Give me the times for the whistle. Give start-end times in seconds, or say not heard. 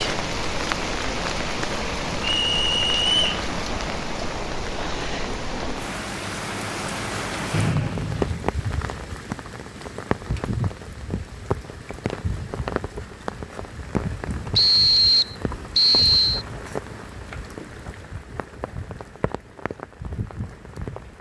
2.2-3.4, 7.5-8.4, 14.6-16.4.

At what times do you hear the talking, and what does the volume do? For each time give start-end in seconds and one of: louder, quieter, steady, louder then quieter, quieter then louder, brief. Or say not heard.
not heard.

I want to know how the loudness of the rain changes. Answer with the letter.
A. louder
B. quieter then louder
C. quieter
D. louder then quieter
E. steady
C.